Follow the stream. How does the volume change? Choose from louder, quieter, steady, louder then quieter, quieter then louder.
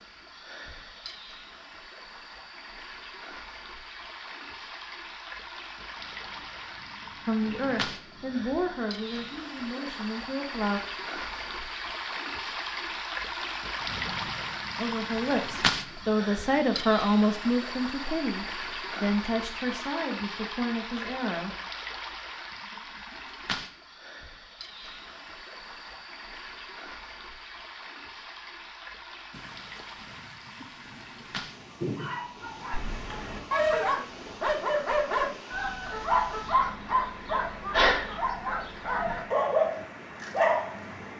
louder then quieter.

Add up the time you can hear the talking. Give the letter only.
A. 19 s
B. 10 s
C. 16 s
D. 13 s
B.